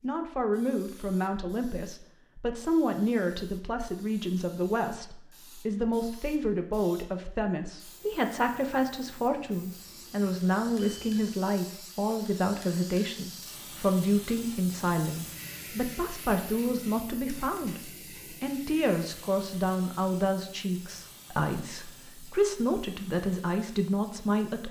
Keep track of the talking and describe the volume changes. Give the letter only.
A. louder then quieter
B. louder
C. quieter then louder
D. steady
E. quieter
D.